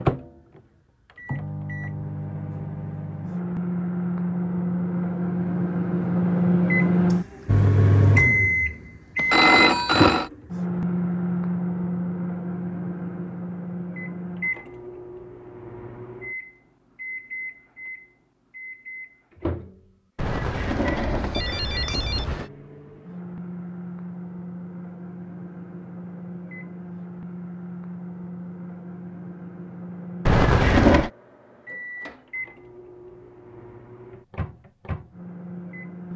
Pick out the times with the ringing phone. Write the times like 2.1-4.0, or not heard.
9.2-10.3, 20.1-22.5, 30.2-31.1.